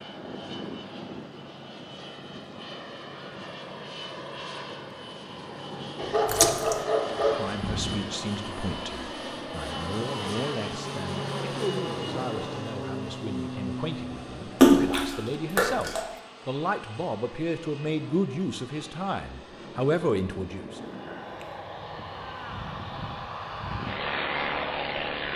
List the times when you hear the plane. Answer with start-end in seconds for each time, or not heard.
0.0-25.3.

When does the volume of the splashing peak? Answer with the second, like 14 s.
15 s.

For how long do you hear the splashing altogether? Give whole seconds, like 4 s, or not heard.
2 s.